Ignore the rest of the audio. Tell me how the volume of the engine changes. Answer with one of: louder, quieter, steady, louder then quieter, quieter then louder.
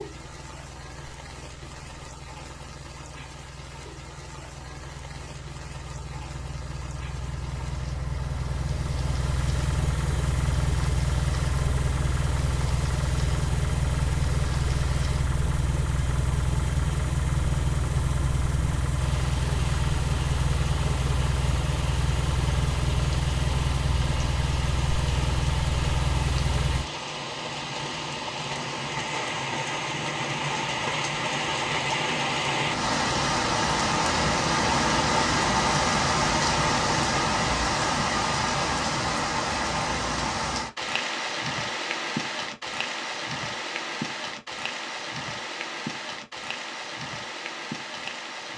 louder.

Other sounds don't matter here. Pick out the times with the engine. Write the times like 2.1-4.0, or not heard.
0.0-26.9.